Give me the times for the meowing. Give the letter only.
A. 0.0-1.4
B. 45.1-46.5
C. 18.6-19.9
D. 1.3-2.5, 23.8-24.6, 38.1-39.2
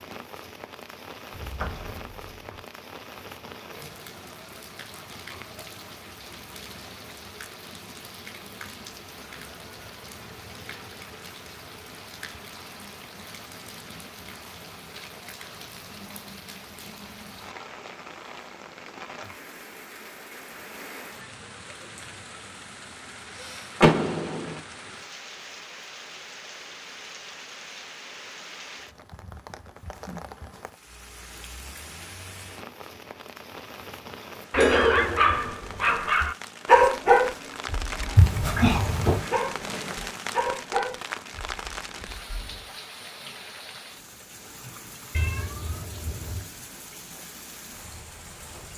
B.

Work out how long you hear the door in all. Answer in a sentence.
The door can be heard for 3 seconds in total.